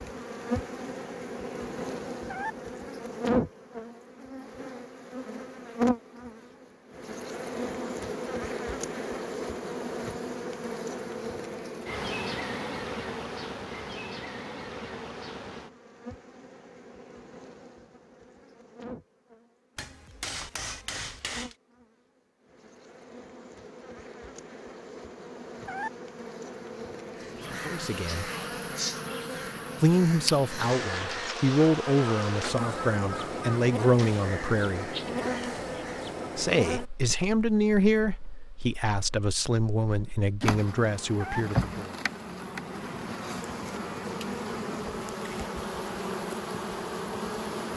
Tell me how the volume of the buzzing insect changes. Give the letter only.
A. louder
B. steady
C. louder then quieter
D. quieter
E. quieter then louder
E.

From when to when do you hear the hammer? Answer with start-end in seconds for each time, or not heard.
19.8-21.6.